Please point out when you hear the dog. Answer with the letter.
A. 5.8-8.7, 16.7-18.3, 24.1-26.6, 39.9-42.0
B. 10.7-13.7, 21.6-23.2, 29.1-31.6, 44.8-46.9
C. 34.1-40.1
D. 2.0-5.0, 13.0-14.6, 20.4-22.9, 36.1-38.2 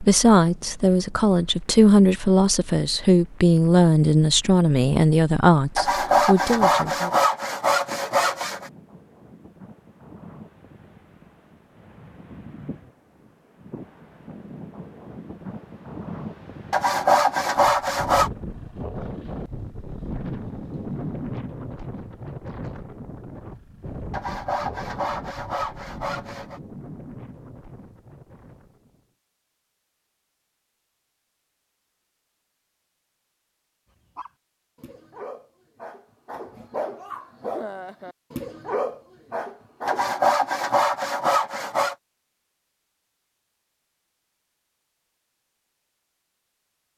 C.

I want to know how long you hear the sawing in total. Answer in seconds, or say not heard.
9 s.